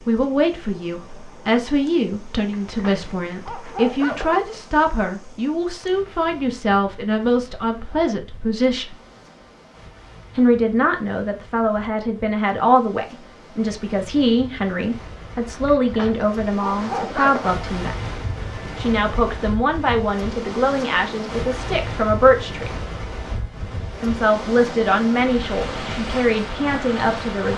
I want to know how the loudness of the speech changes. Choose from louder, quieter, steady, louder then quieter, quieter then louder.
steady.